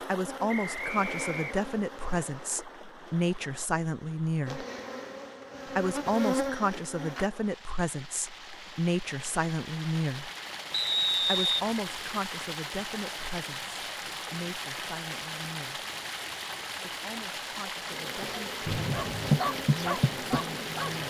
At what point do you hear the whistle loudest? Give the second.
11 s.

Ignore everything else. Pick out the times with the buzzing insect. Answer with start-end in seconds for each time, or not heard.
0.1-2.6, 4.5-7.3, 17.9-21.0.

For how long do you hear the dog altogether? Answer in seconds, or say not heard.
3 s.